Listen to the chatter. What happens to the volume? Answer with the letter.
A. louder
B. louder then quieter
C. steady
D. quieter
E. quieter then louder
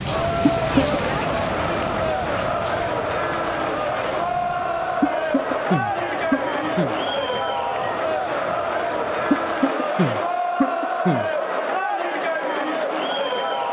C.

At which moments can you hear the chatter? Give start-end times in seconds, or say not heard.
0.0-13.6.